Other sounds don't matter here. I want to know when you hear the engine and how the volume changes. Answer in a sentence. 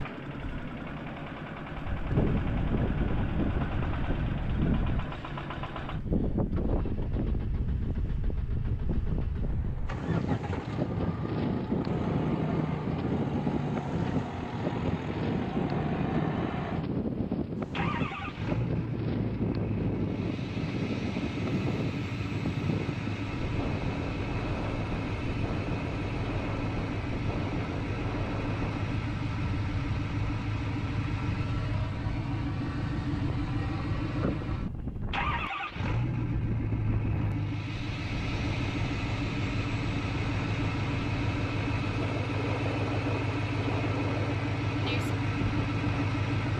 The engine can be heard from 0.0 to 46.5 s, getting louder.